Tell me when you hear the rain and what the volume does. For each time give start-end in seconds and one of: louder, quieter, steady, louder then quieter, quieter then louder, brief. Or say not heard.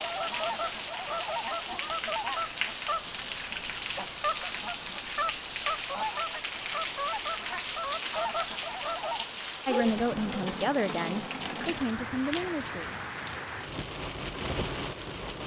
0.0-15.4 steady.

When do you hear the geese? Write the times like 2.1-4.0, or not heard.
0.0-9.2.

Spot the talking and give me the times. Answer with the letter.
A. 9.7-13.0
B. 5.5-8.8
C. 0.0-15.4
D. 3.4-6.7
A.